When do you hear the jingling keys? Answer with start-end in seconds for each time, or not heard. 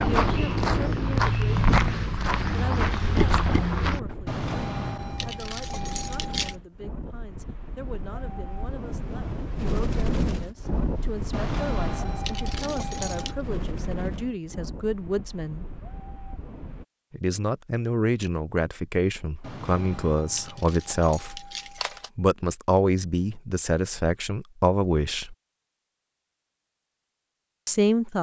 4.2-6.5, 11.3-13.3, 19.4-22.1.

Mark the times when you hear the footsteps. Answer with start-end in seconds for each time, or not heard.
0.0-4.0.